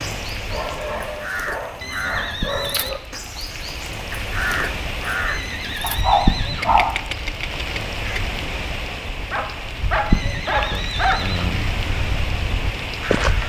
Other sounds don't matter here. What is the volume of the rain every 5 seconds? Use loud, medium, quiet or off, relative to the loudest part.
medium, loud, loud.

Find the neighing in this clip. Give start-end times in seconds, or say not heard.
1.8-3.0, 5.2-7.0, 10.1-11.8.